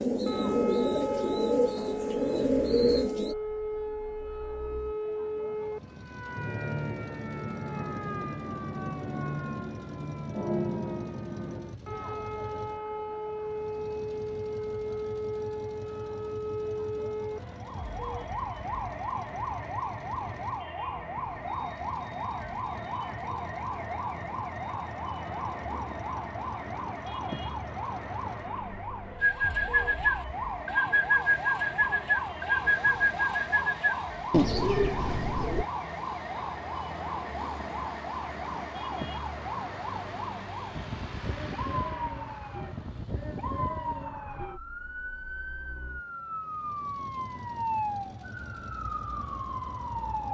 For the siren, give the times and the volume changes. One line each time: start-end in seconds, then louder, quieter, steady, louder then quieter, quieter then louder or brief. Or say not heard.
0.2-50.2 steady.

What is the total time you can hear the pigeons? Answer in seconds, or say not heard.
10 s.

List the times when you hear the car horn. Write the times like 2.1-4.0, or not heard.
not heard.